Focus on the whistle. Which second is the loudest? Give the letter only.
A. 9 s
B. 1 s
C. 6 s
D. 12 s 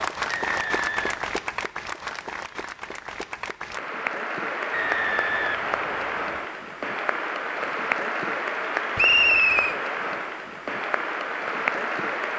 A.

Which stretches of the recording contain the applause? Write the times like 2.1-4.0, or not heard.
0.0-12.3.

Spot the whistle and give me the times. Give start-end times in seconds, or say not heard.
0.2-1.1, 4.7-6.4, 8.9-9.8.